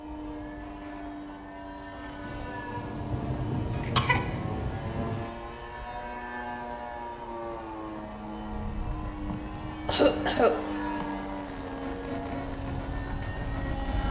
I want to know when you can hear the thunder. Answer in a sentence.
You can hear the thunder from 2.2 to 5.3 s.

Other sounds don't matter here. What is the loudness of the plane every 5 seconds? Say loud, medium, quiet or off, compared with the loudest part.
medium, loud, loud.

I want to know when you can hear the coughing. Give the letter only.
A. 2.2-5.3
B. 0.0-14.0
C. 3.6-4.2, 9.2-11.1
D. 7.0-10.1
C.